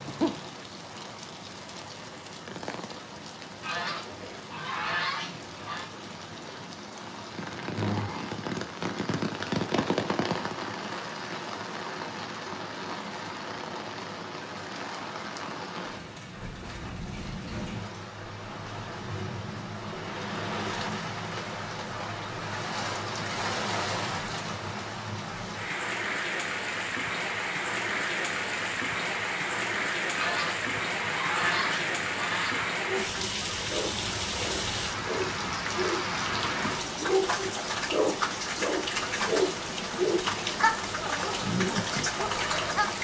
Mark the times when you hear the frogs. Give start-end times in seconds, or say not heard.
not heard.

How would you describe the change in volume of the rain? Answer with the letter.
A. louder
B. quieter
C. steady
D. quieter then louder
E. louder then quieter
A.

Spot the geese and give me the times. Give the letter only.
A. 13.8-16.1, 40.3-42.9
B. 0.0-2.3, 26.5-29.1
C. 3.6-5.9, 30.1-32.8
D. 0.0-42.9
C.